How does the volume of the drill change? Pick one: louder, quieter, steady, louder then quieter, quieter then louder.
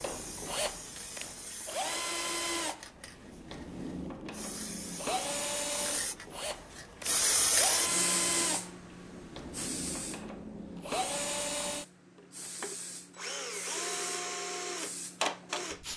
steady.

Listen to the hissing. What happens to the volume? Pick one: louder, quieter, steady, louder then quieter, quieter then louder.
louder then quieter.